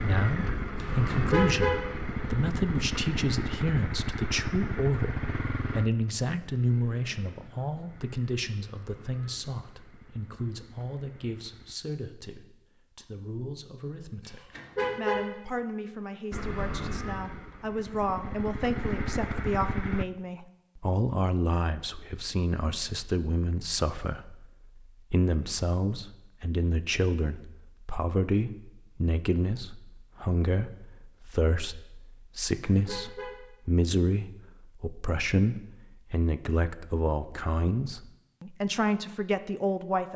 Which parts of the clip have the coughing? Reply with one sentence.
You can't hear the coughing here.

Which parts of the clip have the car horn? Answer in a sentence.
You can hear the car horn from 0.8 to 1.8 s, from 14.2 to 15.2 s and from 32.5 to 33.4 s.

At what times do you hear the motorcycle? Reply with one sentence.
You can hear the motorcycle from 0.0 to 11.8 s and from 16.3 to 20.1 s.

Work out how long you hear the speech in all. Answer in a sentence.
The speech can be heard for 40 seconds in total.